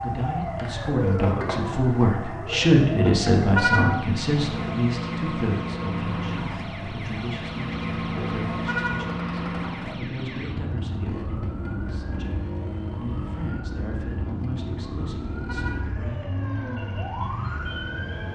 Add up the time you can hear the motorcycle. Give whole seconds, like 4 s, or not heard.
18 s.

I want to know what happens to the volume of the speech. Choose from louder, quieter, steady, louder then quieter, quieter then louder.
quieter.